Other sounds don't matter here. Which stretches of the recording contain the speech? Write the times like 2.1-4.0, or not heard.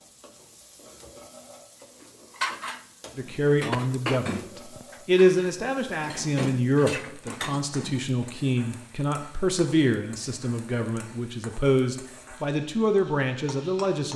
3.1-14.1.